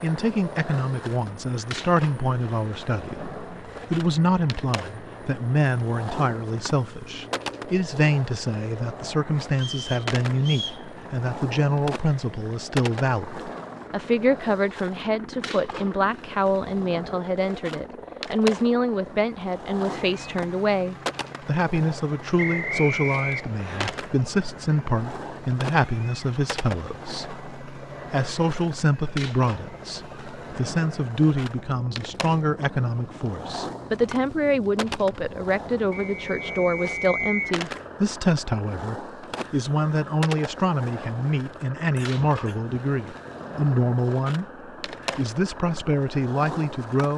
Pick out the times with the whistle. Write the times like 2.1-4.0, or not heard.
9.6-10.8, 22.4-23.9, 35.9-37.6.